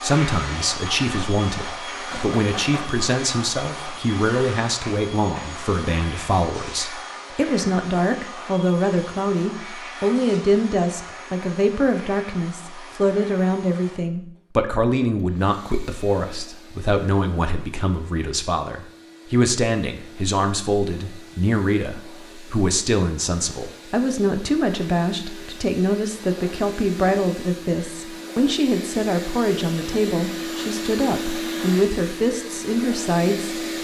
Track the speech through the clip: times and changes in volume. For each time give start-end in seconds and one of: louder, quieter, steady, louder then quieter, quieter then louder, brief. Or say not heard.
0.0-33.6 steady.